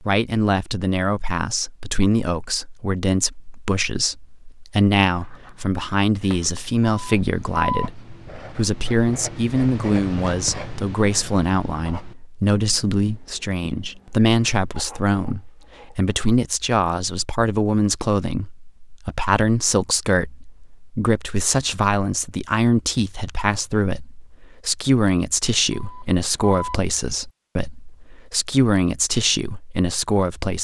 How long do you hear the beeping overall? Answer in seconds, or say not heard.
2 s.